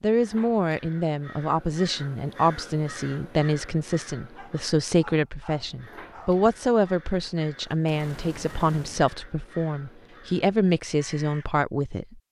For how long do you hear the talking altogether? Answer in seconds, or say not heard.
12 s.